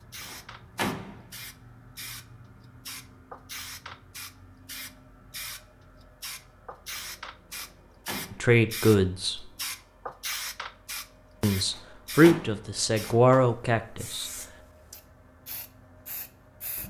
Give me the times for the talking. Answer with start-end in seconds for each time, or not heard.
8.3-9.4, 11.4-14.3.